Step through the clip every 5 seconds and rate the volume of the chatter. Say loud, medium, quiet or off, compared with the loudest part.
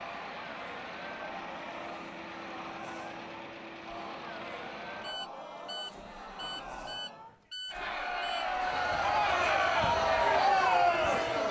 quiet, medium, loud.